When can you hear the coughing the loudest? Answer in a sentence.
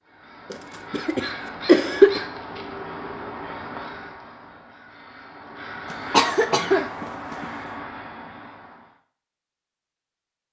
The loudest moment of the coughing is at 2 seconds.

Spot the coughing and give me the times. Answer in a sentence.
The coughing can be heard from 0.5 to 2.2 s and from 5.9 to 7.5 s.